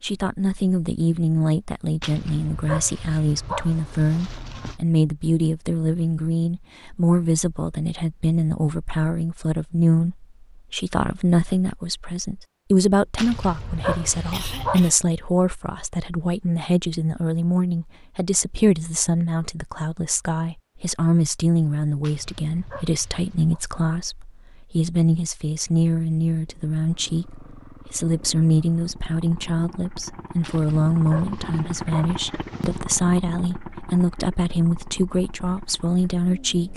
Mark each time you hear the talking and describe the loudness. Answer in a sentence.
The talking can be heard from 0.0 to 36.7 s, at a steady volume.